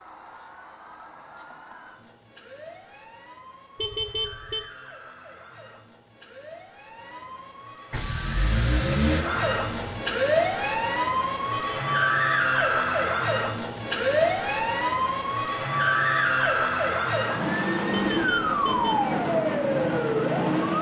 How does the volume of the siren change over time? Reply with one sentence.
The volume of the siren goes up.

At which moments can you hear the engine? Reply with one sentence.
The engine can be heard from 7.9 to 9.9 s.